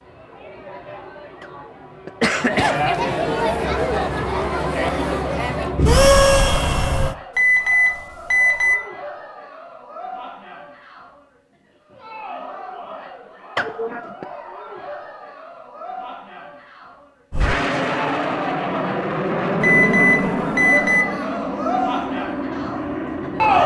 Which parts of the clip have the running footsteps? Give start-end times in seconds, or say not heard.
not heard.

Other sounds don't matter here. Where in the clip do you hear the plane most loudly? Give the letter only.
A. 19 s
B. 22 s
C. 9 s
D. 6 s
D.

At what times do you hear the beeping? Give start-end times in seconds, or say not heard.
7.3-8.8, 19.6-21.1.